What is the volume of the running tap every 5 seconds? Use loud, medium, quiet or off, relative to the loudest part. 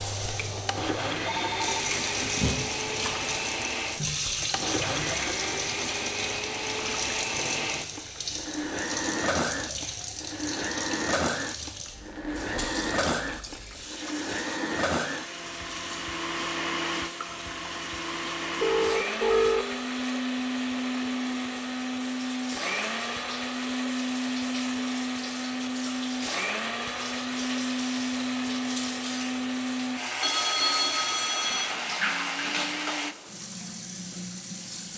loud, loud, medium, medium, medium, medium, loud.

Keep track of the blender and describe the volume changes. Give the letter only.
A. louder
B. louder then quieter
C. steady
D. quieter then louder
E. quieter
C.